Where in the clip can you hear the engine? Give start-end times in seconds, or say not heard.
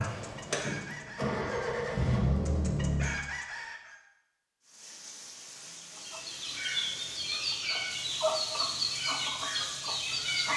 0.0-3.1.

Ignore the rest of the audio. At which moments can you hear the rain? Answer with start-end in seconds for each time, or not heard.
4.6-10.5.